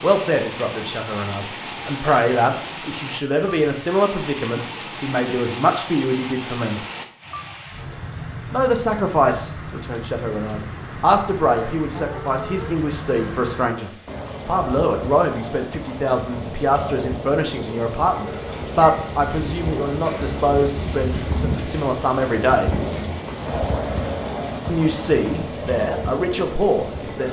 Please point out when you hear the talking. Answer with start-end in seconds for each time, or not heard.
0.0-6.8, 8.5-22.7, 24.6-27.2.